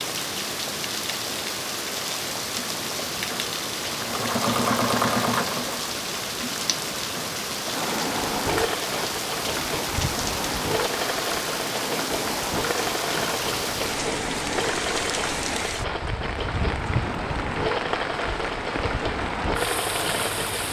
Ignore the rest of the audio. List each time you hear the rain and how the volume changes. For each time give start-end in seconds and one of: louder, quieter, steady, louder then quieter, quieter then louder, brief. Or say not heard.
0.0-20.6 steady.